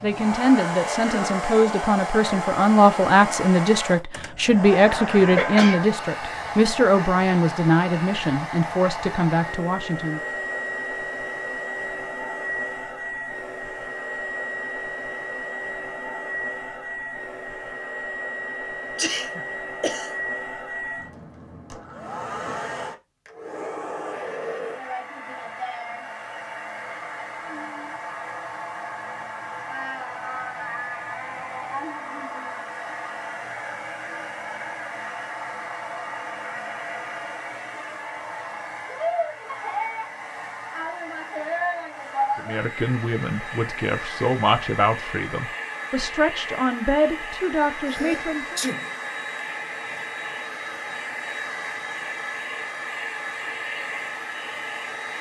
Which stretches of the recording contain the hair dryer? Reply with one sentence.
The hair dryer can be heard from 0.0 to 55.1 s.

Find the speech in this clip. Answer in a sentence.
The speech can be heard from 0.0 to 10.2 s and from 42.4 to 48.6 s.